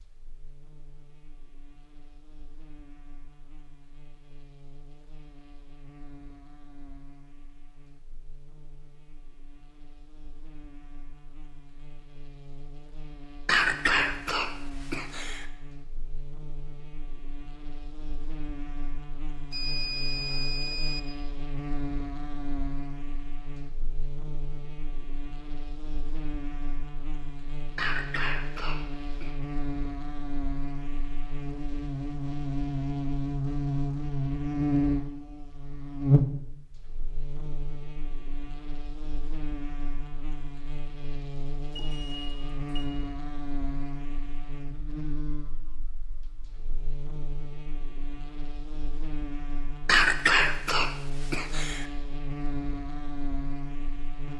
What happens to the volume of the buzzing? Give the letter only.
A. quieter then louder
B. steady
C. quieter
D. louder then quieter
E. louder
D.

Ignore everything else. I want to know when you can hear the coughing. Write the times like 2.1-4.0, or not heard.
13.4-15.4, 27.8-29.3, 49.9-51.9.